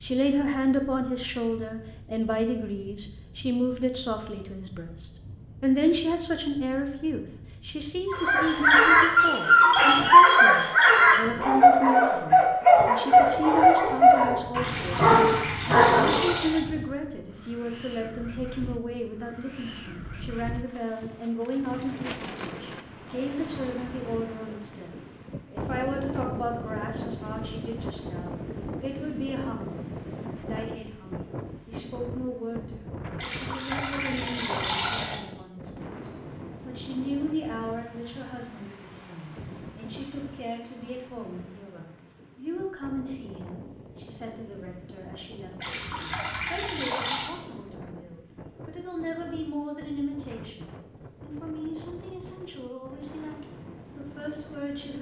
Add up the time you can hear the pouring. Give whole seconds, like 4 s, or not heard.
6 s.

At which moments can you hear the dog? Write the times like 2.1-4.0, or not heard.
8.1-16.3.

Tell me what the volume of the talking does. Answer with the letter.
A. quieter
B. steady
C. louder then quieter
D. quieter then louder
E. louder
A.